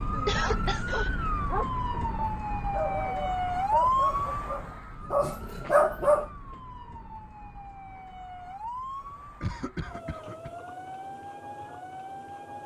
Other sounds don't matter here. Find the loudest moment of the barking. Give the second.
6 s.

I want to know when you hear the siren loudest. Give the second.
4 s.